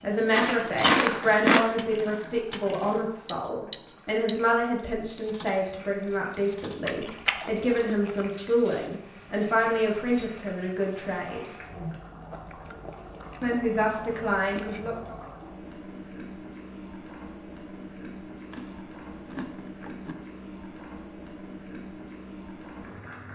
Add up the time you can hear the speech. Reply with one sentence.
You can hear the speech for 13 seconds altogether.